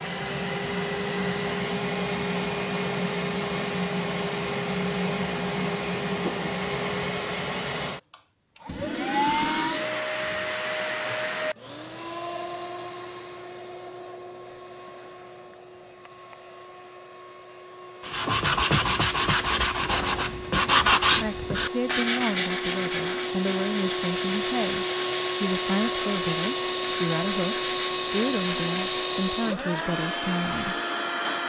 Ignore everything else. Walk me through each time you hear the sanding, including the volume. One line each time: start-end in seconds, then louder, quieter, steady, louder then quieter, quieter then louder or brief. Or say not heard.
18.0-29.1 quieter.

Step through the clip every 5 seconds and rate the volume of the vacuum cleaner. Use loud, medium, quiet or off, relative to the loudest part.
loud, loud, medium, quiet, loud, loud, loud.